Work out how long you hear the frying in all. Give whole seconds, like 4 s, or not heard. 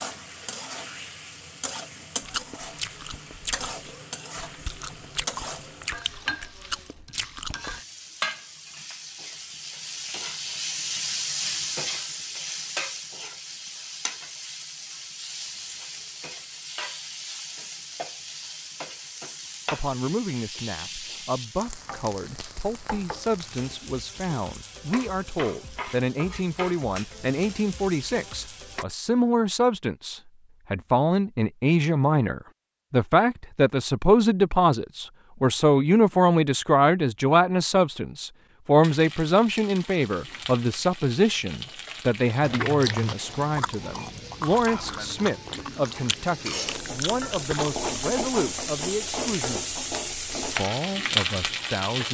42 s.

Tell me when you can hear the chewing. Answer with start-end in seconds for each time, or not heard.
2.2-7.8, 42.4-48.0.